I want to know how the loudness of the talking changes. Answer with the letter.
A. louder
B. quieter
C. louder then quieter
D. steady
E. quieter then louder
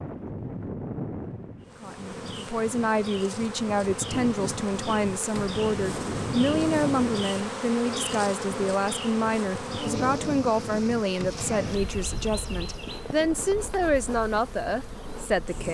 D.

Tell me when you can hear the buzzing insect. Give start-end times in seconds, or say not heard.
1.6-15.6.